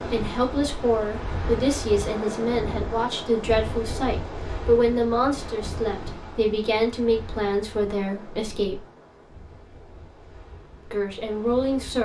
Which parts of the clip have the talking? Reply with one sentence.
You can hear the talking from 0.1 to 8.8 s and from 10.8 to 11.9 s.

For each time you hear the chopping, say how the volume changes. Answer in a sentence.
You can't hear the chopping here.